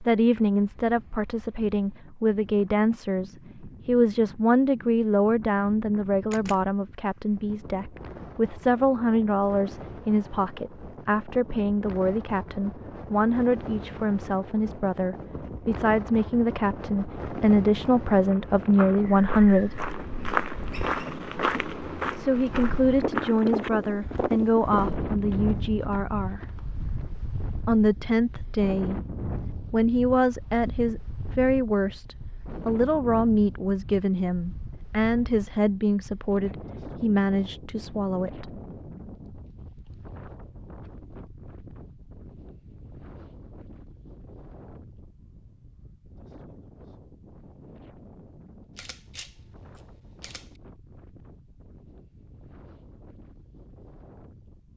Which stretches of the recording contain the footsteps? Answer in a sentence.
You can hear the footsteps from 18.2 to 27.1 s.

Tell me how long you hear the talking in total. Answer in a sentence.
You can hear the talking for 34 seconds altogether.